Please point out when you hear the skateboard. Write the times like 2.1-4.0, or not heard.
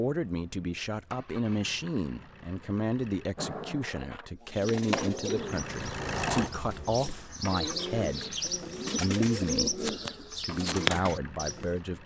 3.4-6.5.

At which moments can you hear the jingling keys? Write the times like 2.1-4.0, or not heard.
not heard.